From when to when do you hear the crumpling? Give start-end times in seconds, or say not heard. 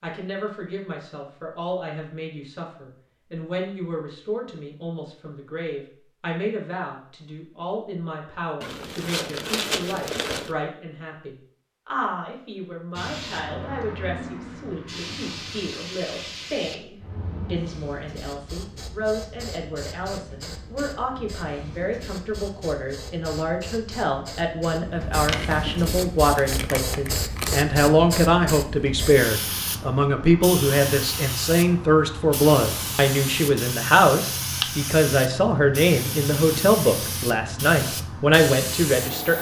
8.6-10.6, 25.2-27.6.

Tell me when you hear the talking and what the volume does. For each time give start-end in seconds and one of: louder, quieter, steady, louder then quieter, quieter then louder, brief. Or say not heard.
0.0-39.3 louder.